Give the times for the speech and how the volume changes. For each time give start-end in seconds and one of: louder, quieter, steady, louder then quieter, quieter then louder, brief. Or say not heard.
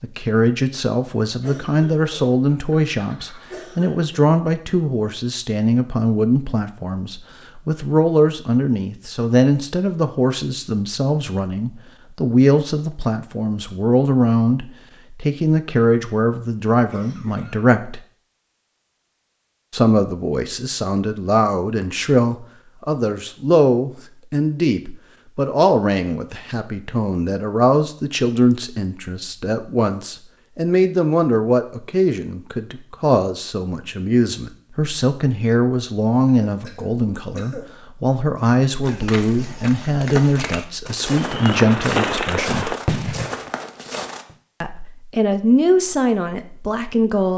0.0-18.0 steady
19.7-42.8 steady
44.6-47.3 brief.